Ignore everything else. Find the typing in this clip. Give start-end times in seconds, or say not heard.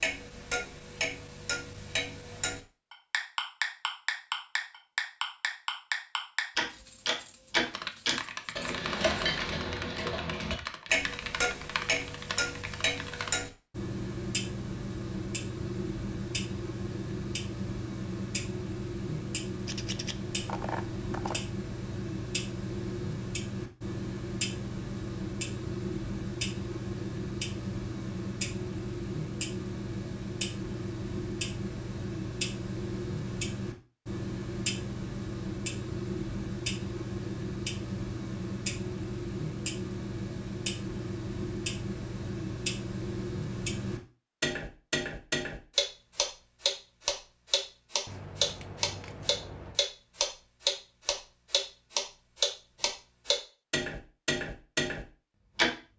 7.7-13.3.